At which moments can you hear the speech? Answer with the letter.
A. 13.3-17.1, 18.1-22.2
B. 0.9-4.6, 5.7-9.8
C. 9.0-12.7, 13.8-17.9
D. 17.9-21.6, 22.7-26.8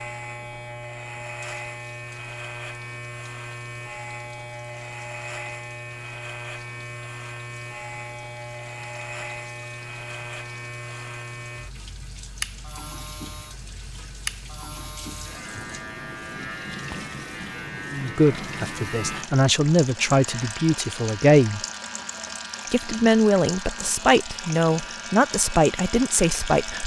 D.